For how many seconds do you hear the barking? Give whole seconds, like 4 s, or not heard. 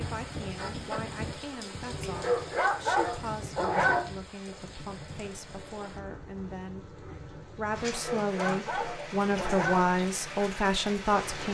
4 s.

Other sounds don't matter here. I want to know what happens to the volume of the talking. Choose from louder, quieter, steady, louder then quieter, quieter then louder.
louder.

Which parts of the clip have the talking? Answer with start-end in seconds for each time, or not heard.
0.0-11.5.